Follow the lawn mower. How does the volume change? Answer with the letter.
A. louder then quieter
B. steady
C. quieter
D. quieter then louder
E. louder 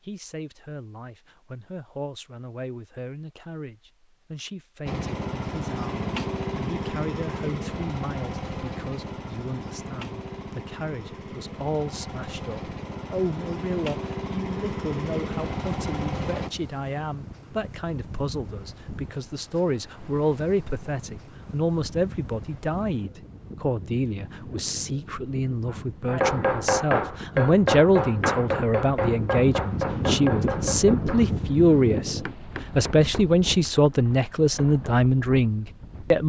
D.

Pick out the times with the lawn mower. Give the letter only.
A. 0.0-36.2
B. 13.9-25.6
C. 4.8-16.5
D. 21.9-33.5
C.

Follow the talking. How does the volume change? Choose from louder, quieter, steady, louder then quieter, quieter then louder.
louder.